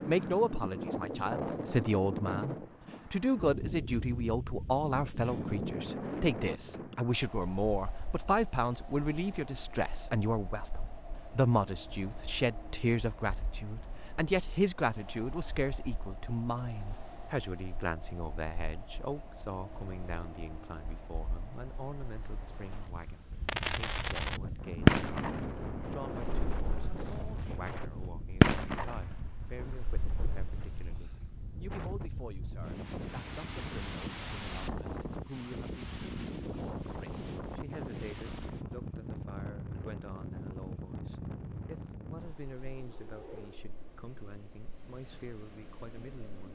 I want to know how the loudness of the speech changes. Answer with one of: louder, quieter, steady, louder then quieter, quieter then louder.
quieter.